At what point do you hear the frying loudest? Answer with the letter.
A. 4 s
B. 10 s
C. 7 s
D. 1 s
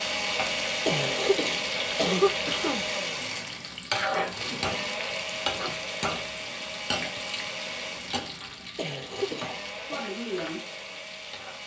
A.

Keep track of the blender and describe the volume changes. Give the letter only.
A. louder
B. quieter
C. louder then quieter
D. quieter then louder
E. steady
B.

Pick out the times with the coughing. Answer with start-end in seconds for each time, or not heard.
0.8-2.9, 8.8-10.0.